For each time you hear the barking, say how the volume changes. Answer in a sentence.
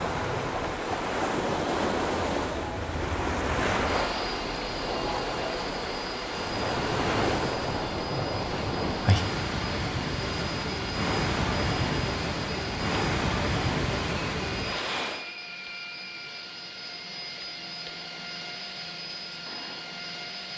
You can't hear the barking here.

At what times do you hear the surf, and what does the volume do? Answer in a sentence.
You can hear the surf from 0.0 to 15.2 s, at a steady volume.